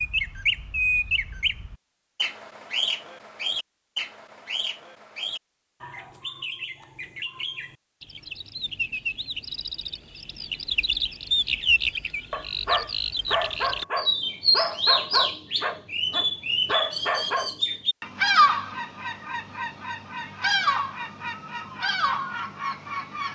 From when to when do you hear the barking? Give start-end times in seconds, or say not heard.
12.3-17.6.